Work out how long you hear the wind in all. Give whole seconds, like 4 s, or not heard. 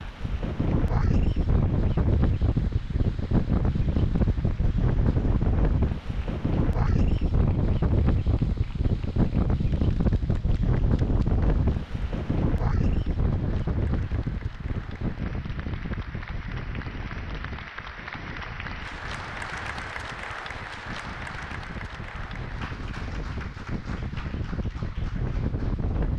26 s.